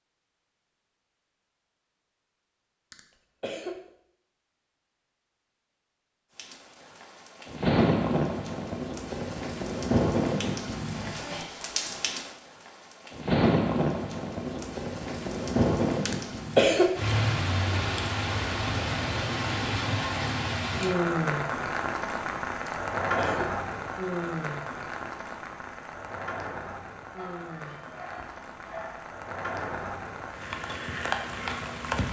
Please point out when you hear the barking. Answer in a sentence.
The barking can be heard from 27.1 to 29.1 s.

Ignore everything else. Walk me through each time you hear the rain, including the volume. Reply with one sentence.
The rain can be heard from 6.3 to 32.0 s, getting quieter.